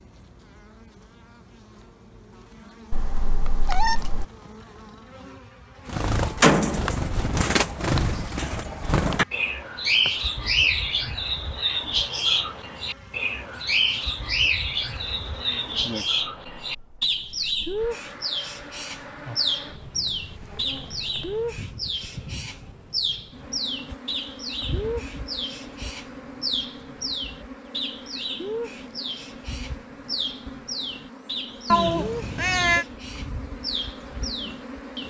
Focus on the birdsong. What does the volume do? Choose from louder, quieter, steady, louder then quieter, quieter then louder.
quieter.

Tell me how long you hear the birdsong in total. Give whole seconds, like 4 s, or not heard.
29 s.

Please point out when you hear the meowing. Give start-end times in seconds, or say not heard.
2.9-4.2, 31.7-32.9.